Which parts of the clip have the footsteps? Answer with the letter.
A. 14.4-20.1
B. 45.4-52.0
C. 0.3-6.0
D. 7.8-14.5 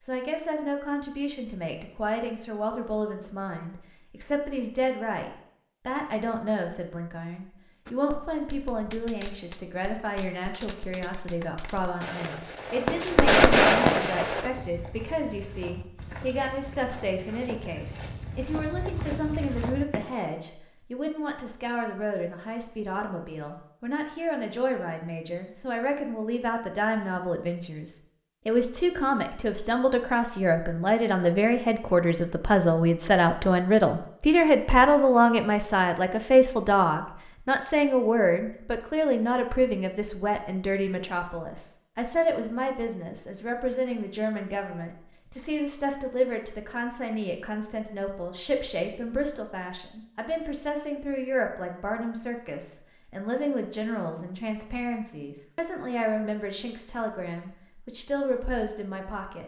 A.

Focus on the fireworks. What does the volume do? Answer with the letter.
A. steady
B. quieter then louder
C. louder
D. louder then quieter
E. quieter
C.